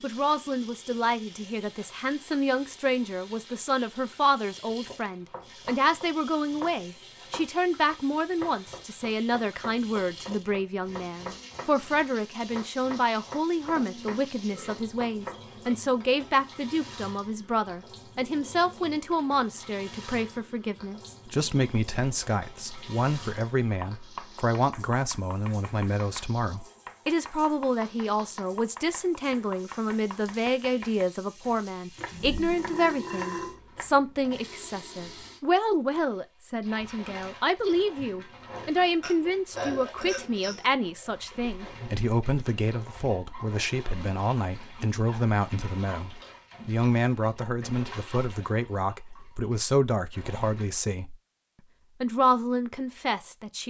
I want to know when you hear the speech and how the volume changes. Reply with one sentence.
The speech can be heard from 0.0 to 51.1 s, at a steady volume; and briefly from 52.0 to 53.6 s.